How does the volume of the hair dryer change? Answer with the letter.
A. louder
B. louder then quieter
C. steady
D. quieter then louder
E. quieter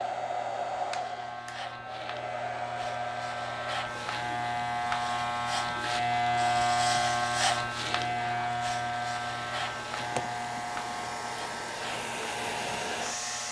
D.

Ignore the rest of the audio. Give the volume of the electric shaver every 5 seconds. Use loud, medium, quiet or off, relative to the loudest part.
medium, loud, medium.